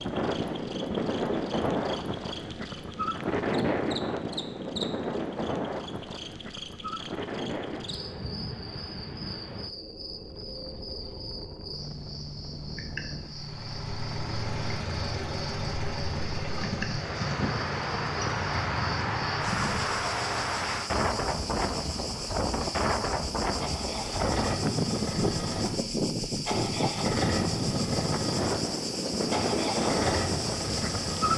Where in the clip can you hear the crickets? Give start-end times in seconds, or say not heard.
0.0-31.3.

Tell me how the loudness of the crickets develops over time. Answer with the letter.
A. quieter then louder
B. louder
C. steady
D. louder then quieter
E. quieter
B.